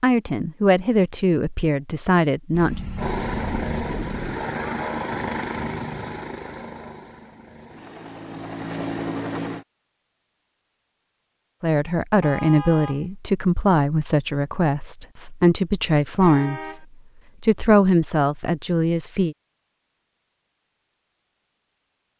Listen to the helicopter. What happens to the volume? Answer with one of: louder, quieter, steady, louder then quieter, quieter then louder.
quieter then louder.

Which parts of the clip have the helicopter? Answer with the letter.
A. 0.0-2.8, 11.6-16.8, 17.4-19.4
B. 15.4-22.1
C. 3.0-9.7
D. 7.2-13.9
C.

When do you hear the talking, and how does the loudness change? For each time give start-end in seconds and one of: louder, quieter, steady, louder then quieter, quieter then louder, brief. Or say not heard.
0.0-2.8 brief
11.6-16.8 steady
17.4-19.4 brief.